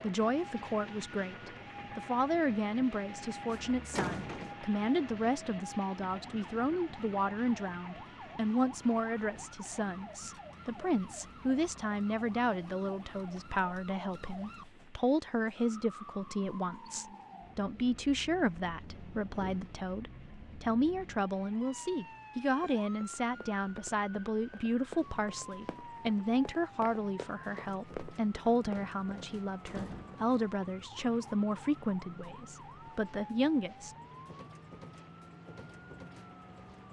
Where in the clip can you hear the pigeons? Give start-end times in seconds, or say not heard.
not heard.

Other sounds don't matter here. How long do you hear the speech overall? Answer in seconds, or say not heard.
34 s.